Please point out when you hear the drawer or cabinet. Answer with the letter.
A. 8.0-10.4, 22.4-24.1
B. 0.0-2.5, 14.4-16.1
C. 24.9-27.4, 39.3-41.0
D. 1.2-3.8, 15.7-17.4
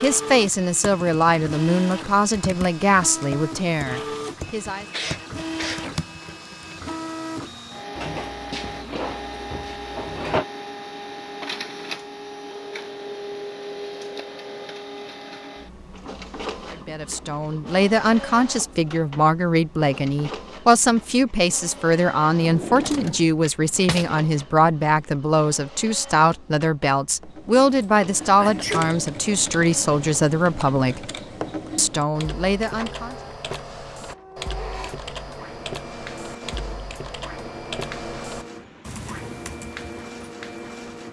A.